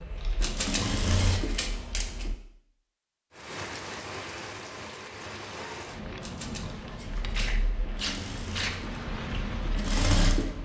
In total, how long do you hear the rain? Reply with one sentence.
The rain can be heard for 7 seconds in total.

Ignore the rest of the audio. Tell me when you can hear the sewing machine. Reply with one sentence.
You can hear the sewing machine from 0.0 to 2.4 s and from 7.0 to 10.6 s.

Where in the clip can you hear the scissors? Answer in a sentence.
You can hear the scissors from 0.4 to 2.3 s and from 6.2 to 7.4 s.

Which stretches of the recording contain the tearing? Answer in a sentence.
You can hear the tearing from 0.1 to 0.6 s and from 6.7 to 8.8 s.